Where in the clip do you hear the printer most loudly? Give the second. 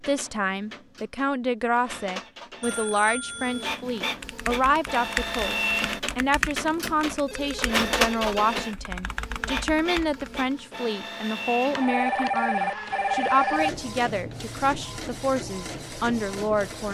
8 s.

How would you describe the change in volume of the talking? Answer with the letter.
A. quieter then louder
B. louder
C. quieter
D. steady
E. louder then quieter
D.